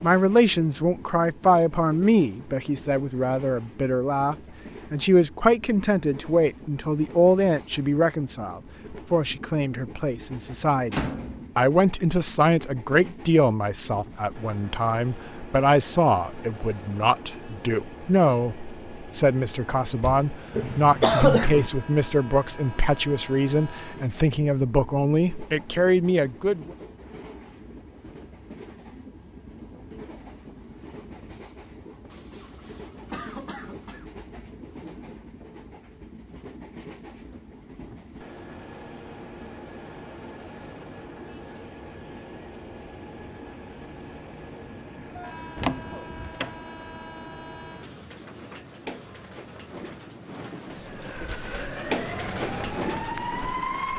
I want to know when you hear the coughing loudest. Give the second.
21 s.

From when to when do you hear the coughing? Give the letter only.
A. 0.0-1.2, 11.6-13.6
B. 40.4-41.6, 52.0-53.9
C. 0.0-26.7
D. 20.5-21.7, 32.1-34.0
D.